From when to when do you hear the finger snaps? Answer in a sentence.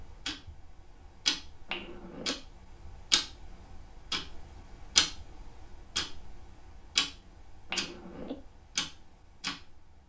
You can hear the finger snaps from 1.7 to 2.4 s and from 7.7 to 8.3 s.